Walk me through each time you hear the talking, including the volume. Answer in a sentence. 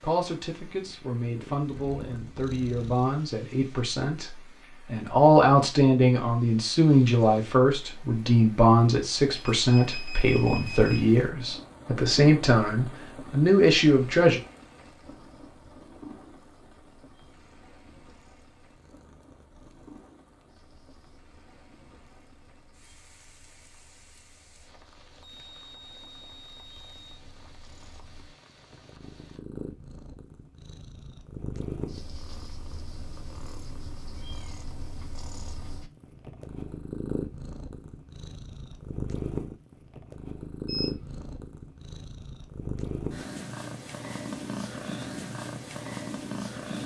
You can hear the talking from 0.0 to 14.4 s, getting louder.